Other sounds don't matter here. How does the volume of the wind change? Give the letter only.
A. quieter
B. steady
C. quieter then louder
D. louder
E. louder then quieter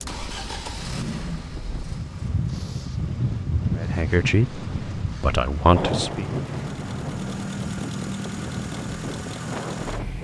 E.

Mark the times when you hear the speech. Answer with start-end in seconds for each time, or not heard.
3.8-6.2.